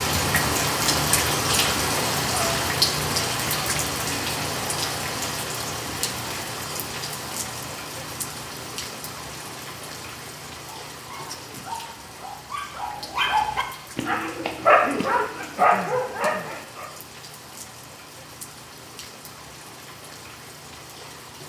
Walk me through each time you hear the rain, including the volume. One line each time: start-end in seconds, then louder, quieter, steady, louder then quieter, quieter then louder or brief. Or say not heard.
0.0-21.4 quieter.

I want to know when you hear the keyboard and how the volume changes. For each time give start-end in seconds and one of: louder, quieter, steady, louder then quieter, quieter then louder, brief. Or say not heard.
not heard.